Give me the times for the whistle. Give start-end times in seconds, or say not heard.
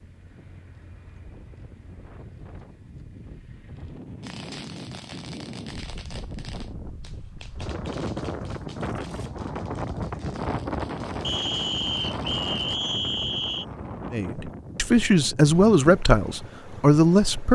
11.2-13.7.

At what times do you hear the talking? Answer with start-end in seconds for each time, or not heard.
14.1-17.5.